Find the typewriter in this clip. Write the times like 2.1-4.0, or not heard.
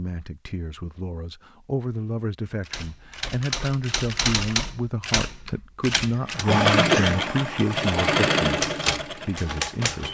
2.6-6.5, 8.6-10.0.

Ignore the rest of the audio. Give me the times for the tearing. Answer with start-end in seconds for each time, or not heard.
not heard.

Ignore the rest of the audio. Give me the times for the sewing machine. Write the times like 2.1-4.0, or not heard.
6.3-9.9.